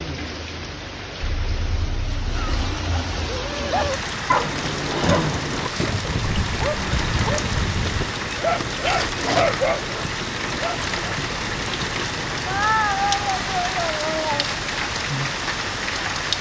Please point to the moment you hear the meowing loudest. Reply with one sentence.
The loudest moment of the meowing is at 13 seconds.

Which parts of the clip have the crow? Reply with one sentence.
The crow can't be heard in this clip.